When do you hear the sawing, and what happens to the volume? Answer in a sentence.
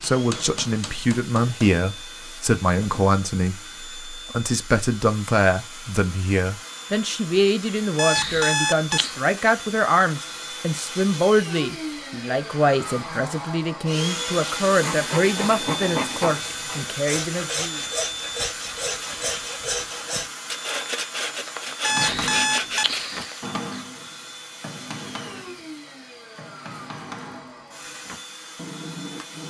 The sawing can be heard from 14.8 to 23.5 s, at a steady volume.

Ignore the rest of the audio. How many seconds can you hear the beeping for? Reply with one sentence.
The beeping can be heard for 3 seconds in total.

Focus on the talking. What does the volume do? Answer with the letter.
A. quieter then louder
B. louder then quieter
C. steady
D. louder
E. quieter
C.